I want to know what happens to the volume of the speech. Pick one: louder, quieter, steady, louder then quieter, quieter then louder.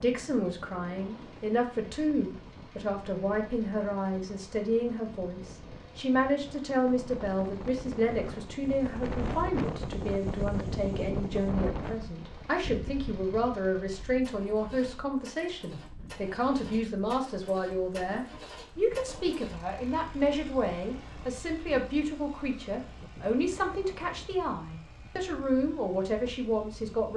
steady.